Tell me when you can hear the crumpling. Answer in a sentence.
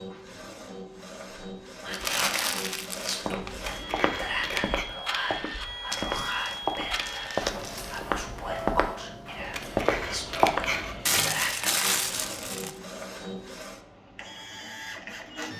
You can hear the crumpling from 1.9 to 3.2 s, from 5.9 to 8.0 s and from 11.1 to 12.8 s.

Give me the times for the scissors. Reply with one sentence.
The scissors can be heard from 3.6 to 4.8 s and from 9.5 to 11.6 s.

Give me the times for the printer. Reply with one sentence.
The printer can be heard from 0.0 to 15.5 s.